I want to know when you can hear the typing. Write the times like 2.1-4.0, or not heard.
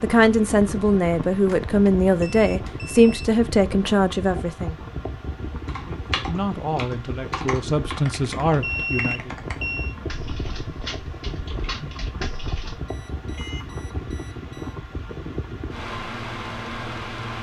5.7-12.8.